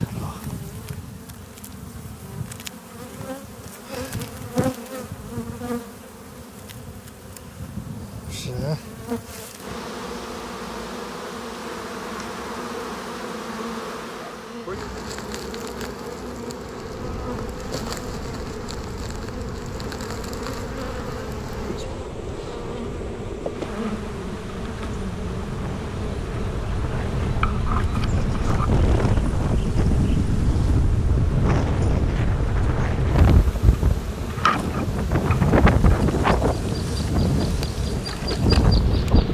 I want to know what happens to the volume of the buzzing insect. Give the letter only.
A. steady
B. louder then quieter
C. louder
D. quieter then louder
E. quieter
A.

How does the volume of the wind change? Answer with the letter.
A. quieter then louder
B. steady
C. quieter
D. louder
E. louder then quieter
D.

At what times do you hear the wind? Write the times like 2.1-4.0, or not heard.
16.8-39.2.